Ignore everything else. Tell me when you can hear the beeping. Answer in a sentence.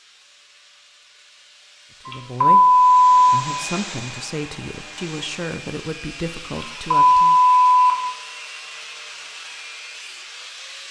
You can hear the beeping from 2.0 to 3.1 s and from 6.5 to 8.0 s.